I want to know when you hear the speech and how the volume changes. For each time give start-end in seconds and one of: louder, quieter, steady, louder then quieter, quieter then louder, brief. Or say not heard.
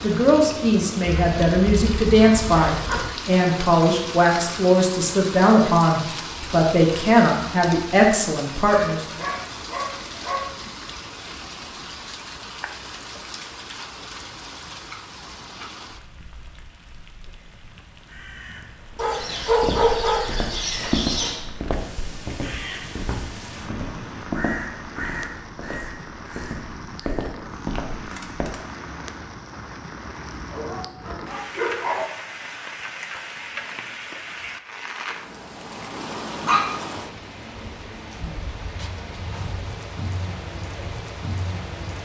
0.0-9.2 steady.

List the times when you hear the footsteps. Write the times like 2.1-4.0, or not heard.
19.6-28.5.